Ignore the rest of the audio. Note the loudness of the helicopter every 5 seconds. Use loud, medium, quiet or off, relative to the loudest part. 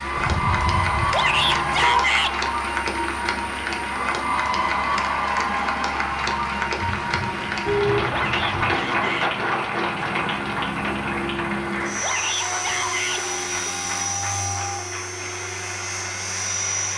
medium, medium, loud, loud.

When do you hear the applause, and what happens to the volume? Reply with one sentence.
You can hear the applause from 0.0 to 16.9 s, getting quieter.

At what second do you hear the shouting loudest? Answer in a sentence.
The volume of the shouting peaks at 2 seconds.